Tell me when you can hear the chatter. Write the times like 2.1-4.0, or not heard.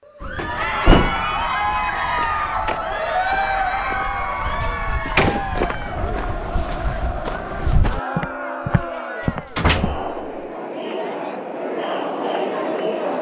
0.1-13.1.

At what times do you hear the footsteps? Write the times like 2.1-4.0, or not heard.
0.2-9.9.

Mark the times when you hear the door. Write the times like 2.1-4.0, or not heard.
0.3-1.3, 4.6-5.4, 9.5-10.2.